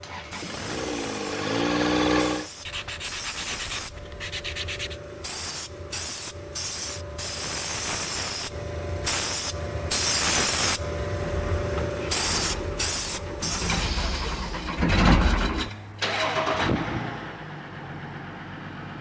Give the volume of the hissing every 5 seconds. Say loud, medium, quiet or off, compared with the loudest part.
medium, loud, loud, off.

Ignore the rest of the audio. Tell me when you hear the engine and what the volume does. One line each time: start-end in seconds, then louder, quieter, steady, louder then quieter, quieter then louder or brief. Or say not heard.
0.0-2.5 brief
11.2-18.9 louder then quieter.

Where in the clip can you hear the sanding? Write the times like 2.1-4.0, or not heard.
2.6-5.0, 13.7-16.4.